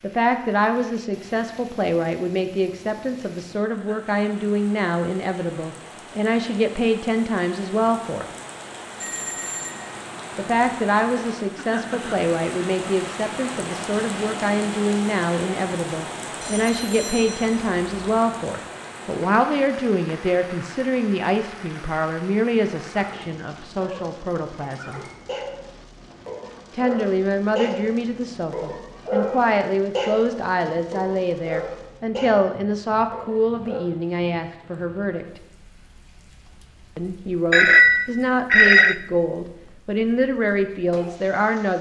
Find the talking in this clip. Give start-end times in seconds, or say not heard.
0.0-8.3, 10.3-25.0, 26.7-35.4, 37.0-41.7.